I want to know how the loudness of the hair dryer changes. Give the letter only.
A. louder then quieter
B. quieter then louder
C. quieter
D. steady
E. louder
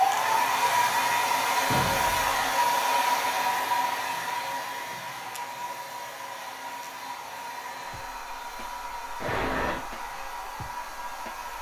C.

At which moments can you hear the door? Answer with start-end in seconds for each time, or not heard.
1.6-2.4, 9.2-9.8.